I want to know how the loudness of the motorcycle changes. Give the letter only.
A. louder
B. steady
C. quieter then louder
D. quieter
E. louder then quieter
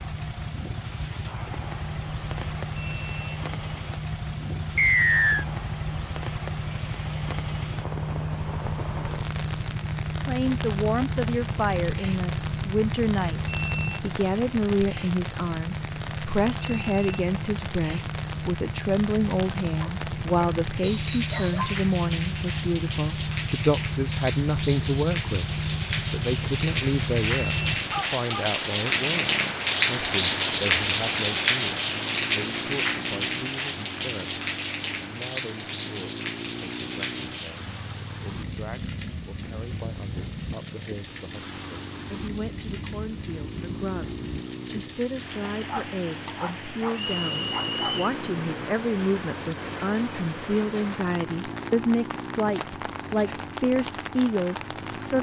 D.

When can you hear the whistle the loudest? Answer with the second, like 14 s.
5 s.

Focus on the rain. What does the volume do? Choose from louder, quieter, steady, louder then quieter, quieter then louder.
louder then quieter.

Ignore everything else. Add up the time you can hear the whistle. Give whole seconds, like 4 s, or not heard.
3 s.